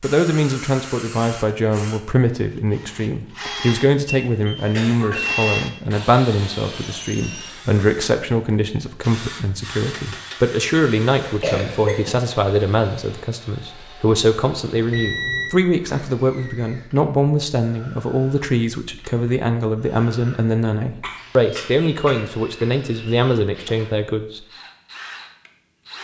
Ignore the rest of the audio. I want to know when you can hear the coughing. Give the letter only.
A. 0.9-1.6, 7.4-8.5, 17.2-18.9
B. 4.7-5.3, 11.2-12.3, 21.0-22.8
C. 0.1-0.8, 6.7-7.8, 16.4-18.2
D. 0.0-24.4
B.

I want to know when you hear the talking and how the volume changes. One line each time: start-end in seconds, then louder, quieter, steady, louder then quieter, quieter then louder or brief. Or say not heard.
0.0-24.4 steady.